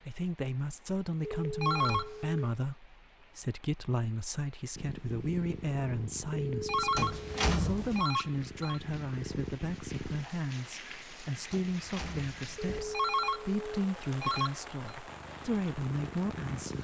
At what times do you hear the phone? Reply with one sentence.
The phone can be heard from 1.2 to 2.5 s, from 6.3 to 8.8 s and from 12.6 to 14.9 s.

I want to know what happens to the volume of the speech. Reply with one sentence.
The loudness of the speech stays about the same.